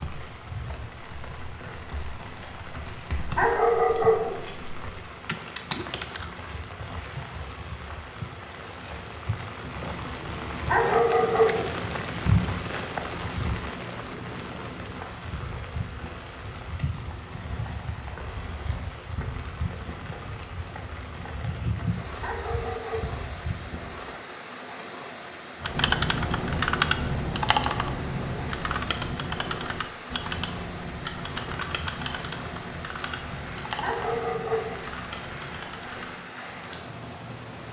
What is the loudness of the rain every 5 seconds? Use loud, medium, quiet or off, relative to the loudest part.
medium, medium, loud, medium, medium, medium, medium, medium.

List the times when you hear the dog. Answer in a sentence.
You can hear the dog from 3.4 to 4.4 s, from 10.7 to 11.8 s, from 22.2 to 23.2 s and from 33.8 to 34.9 s.